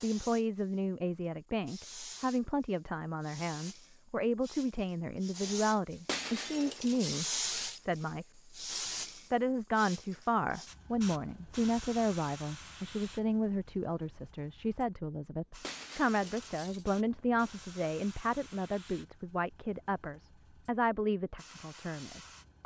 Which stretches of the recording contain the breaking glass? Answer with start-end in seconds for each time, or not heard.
6.0-7.8, 15.6-16.9.